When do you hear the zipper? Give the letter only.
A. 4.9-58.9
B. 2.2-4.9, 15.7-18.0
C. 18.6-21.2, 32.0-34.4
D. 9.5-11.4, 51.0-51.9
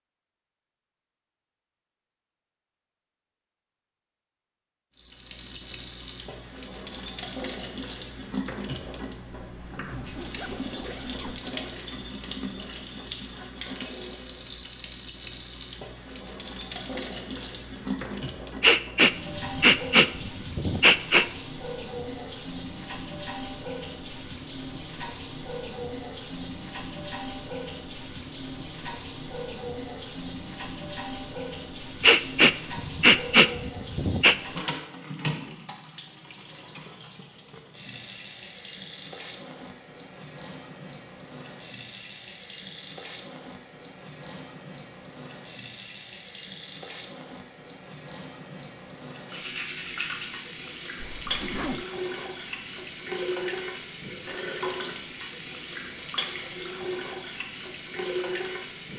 D.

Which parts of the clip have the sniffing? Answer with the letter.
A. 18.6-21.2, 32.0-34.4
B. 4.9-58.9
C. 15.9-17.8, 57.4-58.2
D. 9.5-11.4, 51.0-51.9
A.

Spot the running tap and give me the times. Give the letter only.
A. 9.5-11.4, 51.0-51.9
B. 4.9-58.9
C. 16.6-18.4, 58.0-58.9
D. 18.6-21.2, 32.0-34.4
B.